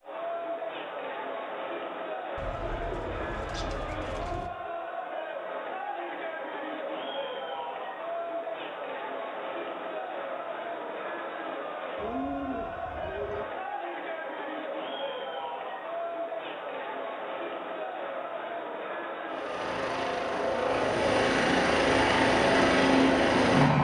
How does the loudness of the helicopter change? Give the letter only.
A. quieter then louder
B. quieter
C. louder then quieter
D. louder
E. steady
D.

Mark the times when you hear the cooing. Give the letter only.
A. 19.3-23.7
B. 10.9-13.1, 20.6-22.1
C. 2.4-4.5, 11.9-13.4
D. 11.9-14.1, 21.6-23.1
C.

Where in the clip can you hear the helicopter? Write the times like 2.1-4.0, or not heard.
19.3-23.7.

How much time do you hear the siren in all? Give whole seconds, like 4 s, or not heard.
not heard.